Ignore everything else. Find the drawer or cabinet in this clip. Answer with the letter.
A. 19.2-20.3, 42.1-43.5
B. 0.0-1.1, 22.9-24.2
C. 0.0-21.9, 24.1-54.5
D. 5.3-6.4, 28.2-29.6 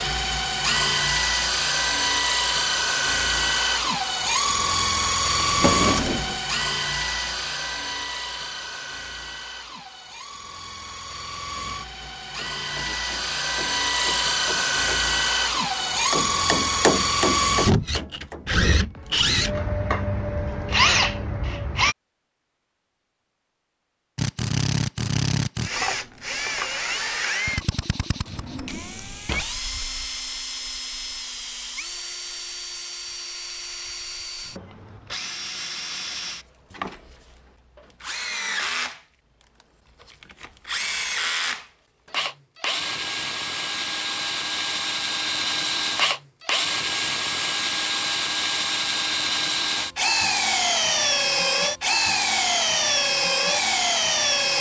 D.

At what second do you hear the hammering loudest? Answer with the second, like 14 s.
17 s.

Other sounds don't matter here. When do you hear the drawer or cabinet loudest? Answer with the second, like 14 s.
6 s.